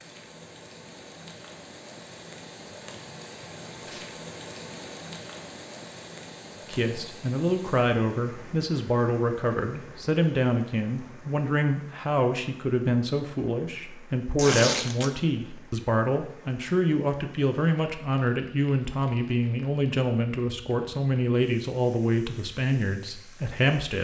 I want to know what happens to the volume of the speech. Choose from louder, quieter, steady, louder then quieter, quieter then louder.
steady.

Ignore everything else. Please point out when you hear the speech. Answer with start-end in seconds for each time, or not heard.
6.7-23.9.